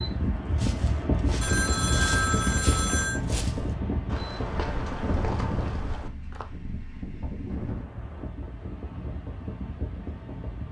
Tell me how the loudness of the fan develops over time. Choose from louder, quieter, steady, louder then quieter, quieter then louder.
quieter.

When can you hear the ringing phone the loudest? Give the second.
2 s.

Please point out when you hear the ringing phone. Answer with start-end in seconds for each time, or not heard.
1.4-3.2, 7.5-8.3.